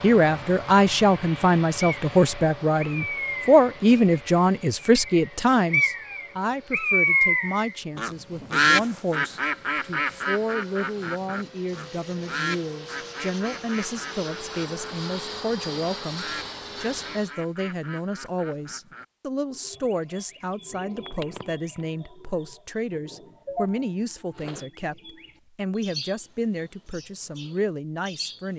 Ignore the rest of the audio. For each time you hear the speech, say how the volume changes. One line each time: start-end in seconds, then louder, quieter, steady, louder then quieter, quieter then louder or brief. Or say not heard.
0.0-28.5 quieter.